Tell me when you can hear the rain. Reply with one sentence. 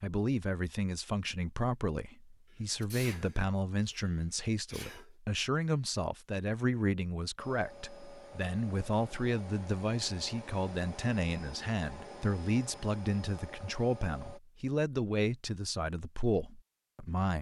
The rain can't be heard in this clip.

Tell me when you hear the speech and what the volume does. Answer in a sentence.
You can hear the speech from 0.0 to 17.3 s, at a steady volume.